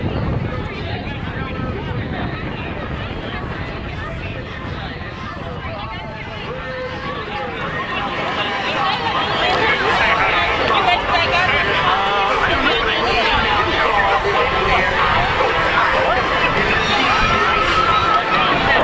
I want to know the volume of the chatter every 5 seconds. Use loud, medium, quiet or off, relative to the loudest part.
quiet, medium, loud, loud.